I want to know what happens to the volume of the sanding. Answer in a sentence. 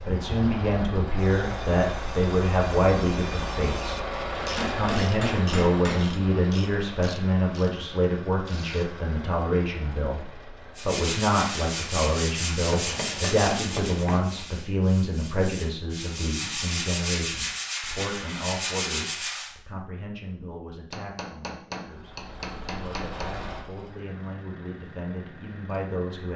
The loudness of the sanding goes down, then up.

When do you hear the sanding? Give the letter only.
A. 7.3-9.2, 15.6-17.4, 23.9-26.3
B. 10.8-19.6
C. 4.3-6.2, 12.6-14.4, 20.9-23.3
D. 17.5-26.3
B.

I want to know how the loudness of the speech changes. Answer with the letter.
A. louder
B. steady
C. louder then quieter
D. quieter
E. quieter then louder
D.